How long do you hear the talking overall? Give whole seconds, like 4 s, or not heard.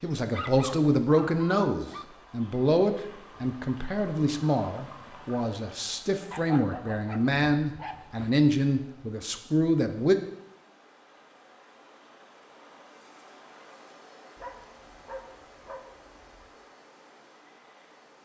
10 s.